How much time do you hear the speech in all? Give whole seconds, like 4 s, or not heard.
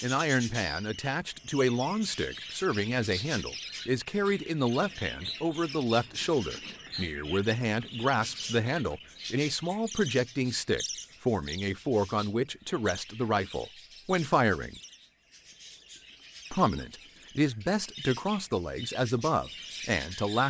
19 s.